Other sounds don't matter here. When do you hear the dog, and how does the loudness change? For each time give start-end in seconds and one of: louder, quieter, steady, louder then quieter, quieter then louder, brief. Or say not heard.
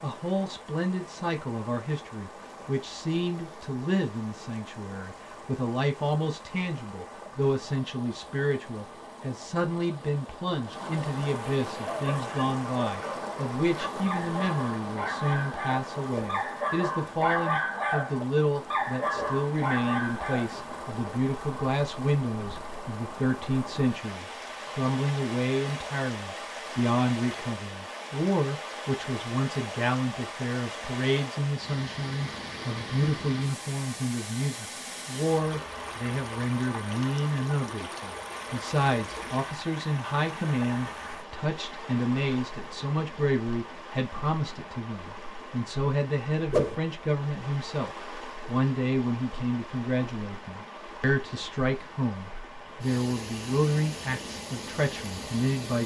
11.8-20.6 louder.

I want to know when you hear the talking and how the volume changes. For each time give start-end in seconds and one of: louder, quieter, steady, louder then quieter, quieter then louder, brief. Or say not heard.
0.0-55.8 steady.